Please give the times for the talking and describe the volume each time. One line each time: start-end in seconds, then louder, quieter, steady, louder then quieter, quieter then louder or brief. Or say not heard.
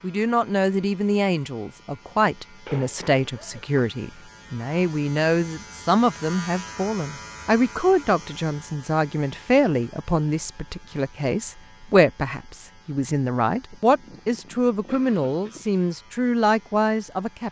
0.0-17.4 steady.